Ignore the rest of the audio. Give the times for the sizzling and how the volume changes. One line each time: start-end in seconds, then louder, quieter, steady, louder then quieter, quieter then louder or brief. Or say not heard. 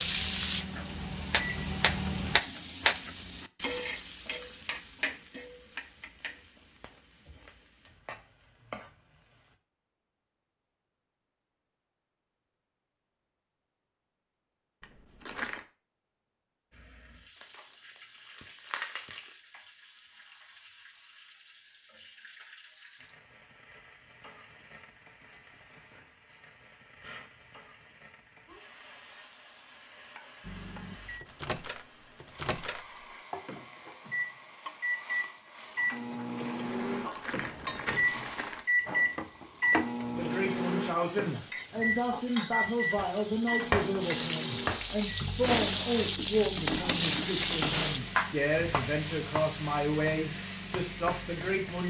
0.0-9.6 quieter
16.7-51.8 louder.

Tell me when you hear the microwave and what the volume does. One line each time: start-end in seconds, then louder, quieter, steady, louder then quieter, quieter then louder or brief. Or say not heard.
0.0-2.4 brief
30.4-51.8 louder then quieter.